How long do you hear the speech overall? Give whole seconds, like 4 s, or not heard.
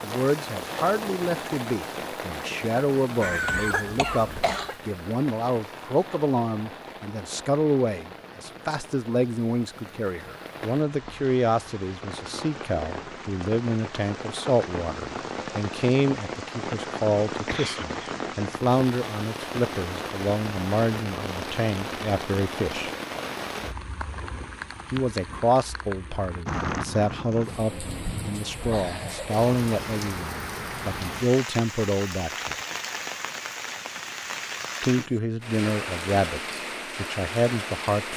34 s.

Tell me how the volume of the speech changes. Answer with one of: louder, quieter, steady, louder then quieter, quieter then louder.
steady.